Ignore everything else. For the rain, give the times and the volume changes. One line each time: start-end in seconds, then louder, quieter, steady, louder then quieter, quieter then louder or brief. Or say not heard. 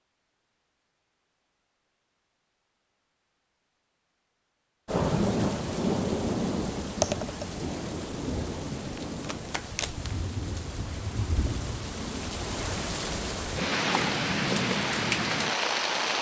4.8-16.1 quieter then louder.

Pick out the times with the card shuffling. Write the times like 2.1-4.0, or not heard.
8.9-10.1.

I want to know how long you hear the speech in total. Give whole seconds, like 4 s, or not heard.
not heard.